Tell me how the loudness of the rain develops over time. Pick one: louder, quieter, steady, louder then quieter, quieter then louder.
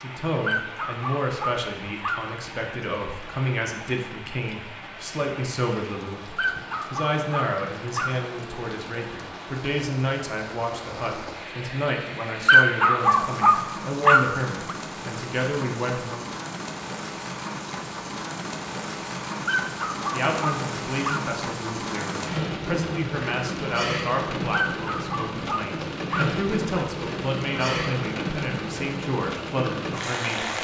louder.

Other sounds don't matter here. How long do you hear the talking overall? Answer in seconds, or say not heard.
27 s.